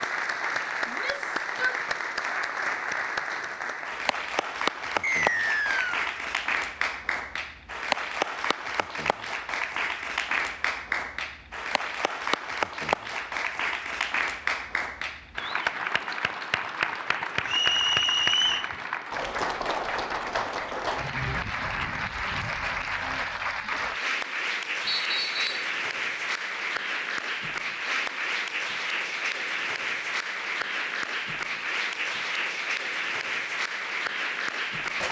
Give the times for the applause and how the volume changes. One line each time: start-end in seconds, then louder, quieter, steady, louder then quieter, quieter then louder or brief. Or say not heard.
0.0-35.0 steady.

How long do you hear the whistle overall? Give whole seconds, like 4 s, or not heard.
3 s.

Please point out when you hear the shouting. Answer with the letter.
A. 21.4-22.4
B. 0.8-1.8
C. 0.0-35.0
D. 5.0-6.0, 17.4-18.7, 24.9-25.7
B.